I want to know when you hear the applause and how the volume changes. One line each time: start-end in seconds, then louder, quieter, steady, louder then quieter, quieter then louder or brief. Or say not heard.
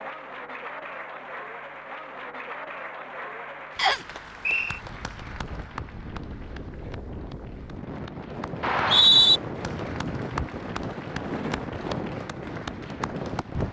0.0-13.6 quieter then louder.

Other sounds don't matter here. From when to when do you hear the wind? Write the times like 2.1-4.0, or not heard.
4.5-13.6.